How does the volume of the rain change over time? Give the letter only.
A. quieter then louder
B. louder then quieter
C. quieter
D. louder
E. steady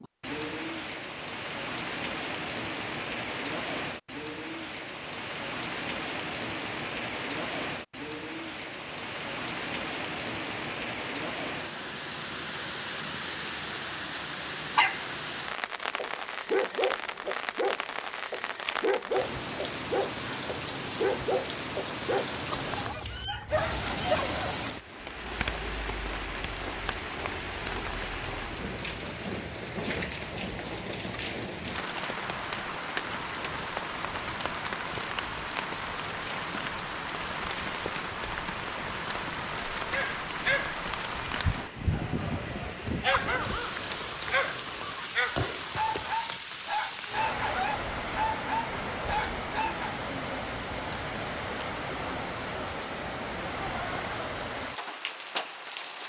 E.